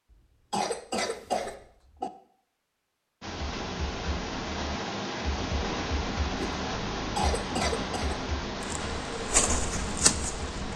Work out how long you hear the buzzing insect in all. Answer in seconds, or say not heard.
2 s.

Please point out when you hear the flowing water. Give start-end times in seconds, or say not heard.
3.2-10.7.